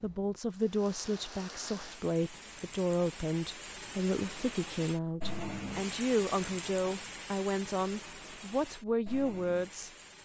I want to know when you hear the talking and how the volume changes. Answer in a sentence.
The talking can be heard from 0.0 to 9.9 s, at a steady volume.